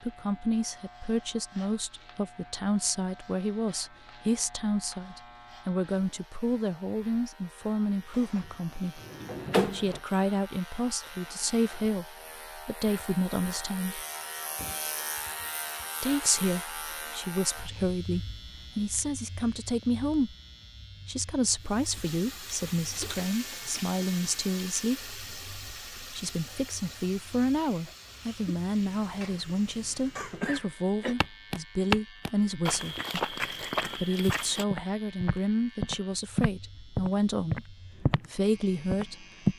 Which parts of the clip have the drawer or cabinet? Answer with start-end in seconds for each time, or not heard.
8.1-10.0.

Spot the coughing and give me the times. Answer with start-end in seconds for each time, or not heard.
30.1-31.1.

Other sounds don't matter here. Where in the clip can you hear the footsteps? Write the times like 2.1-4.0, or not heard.
31.2-38.3, 38.9-39.5.